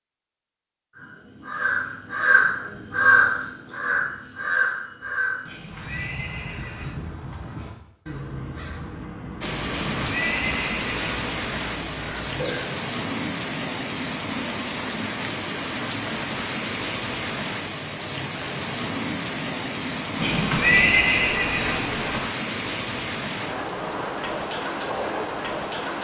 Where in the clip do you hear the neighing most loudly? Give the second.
21 s.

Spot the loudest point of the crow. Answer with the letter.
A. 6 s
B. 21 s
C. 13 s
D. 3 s
D.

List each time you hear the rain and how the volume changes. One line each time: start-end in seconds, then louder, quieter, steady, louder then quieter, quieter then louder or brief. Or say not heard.
9.4-25.9 steady.